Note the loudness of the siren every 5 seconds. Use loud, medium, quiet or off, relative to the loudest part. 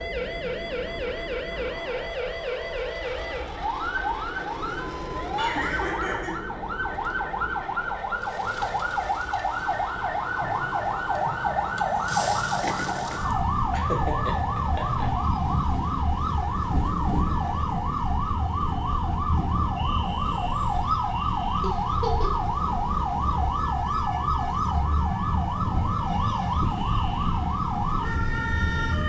medium, loud, loud, loud, loud, loud.